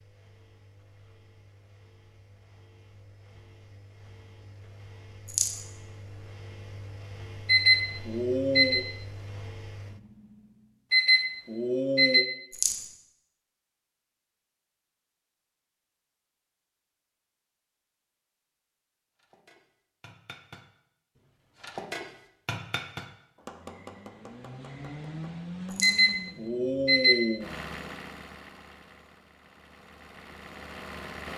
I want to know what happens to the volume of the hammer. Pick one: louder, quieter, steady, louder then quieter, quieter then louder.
louder then quieter.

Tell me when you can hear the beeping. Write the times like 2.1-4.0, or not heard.
7.5-8.8, 10.9-12.2, 25.8-27.4.